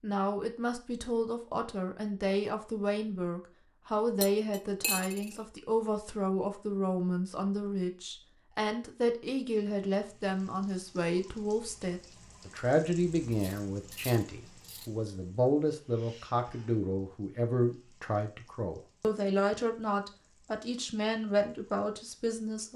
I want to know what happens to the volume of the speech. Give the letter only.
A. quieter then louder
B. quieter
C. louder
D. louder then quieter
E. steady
E.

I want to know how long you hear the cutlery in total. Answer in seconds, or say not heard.
3 s.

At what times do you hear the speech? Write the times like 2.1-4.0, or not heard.
0.0-22.7.